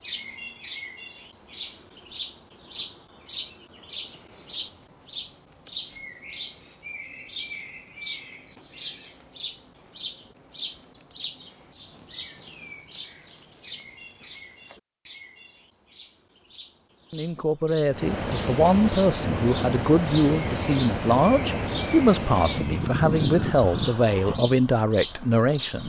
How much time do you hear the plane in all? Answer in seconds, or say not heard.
8 s.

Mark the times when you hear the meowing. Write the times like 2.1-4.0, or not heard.
not heard.